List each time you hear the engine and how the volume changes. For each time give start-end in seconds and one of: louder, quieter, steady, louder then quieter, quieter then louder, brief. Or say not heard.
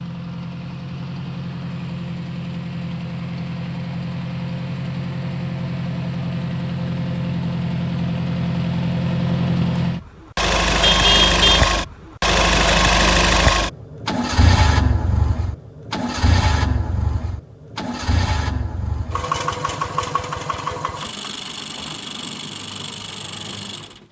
0.0-24.0 louder then quieter.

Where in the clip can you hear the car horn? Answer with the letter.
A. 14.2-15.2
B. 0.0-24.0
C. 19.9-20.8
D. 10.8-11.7
D.